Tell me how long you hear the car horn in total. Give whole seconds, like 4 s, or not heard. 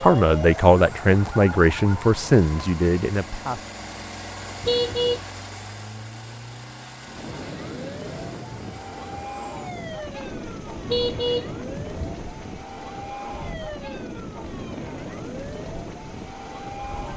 2 s.